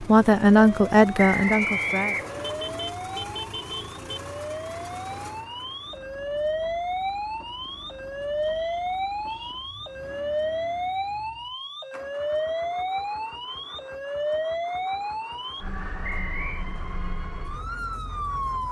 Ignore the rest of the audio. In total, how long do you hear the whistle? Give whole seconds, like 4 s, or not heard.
3 s.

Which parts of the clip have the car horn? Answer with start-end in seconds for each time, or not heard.
2.4-4.2.